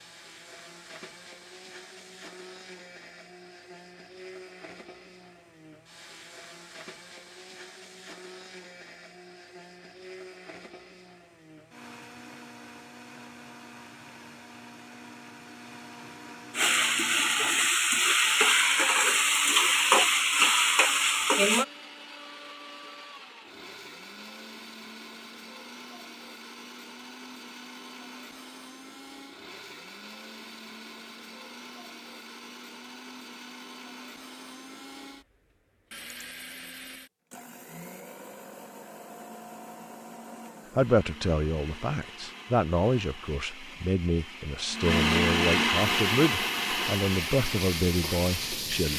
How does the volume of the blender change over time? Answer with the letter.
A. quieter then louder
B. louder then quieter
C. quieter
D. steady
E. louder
E.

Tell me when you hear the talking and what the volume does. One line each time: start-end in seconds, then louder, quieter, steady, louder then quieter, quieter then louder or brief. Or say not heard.
40.8-48.9 steady.